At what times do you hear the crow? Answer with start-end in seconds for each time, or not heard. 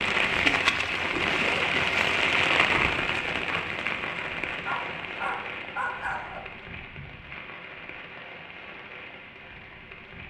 not heard.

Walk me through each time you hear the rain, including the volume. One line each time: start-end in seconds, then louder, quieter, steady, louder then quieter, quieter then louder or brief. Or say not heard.
0.0-10.2 quieter.